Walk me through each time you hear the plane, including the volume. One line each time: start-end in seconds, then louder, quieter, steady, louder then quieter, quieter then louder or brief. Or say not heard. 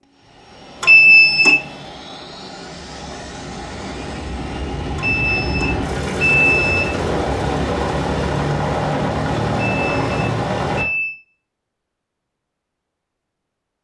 0.0-10.8 louder.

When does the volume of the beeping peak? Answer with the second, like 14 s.
1 s.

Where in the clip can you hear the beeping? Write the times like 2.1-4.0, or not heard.
0.8-1.6, 5.0-7.0, 9.8-11.2.